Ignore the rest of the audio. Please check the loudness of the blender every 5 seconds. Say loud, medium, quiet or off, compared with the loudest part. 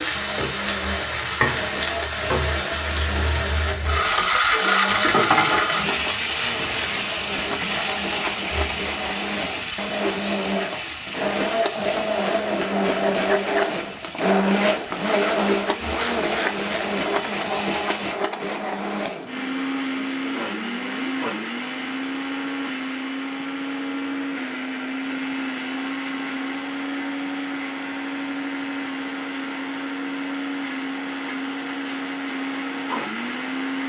medium, medium, loud, loud, medium, medium, medium.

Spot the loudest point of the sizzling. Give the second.
5 s.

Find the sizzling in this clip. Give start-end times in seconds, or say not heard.
0.0-18.1.